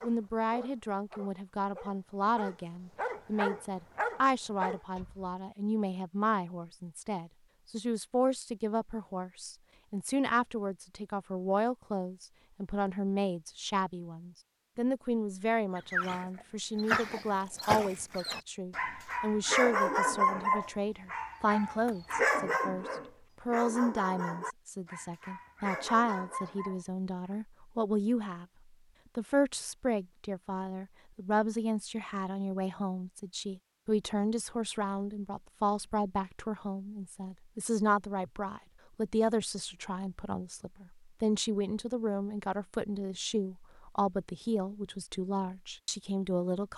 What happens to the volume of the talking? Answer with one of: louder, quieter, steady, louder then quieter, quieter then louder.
steady.